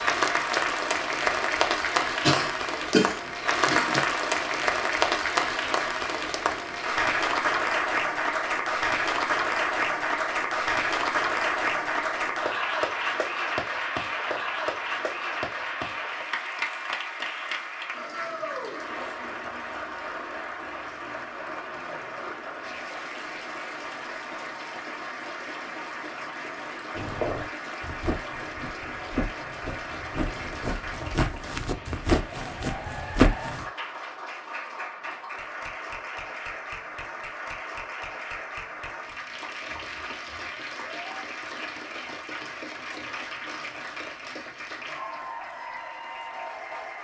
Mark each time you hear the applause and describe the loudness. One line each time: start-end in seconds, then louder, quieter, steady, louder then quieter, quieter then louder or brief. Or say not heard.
0.0-47.0 quieter.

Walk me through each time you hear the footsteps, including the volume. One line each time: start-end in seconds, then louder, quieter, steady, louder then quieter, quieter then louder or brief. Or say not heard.
26.9-33.6 louder.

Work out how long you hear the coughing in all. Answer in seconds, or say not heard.
2 s.